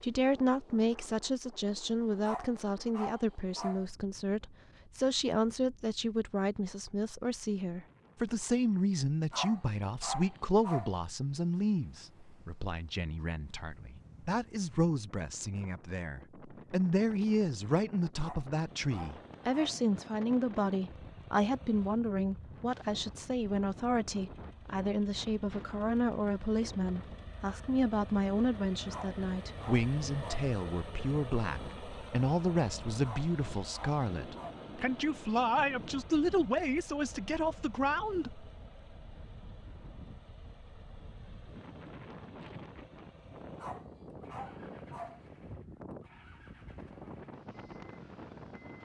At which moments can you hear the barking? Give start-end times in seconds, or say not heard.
2.2-3.9, 9.3-10.9, 18.2-19.8, 28.9-30.4, 33.0-34.5, 43.5-45.2.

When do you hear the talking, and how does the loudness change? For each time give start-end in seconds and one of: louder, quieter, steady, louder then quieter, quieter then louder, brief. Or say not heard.
0.0-38.5 steady.